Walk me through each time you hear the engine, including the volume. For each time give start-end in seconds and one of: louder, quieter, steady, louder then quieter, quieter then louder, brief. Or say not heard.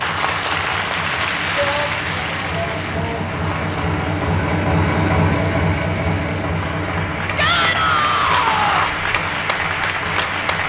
0.0-10.6 louder then quieter.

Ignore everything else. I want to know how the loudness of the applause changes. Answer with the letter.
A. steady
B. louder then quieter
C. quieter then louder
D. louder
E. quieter
C.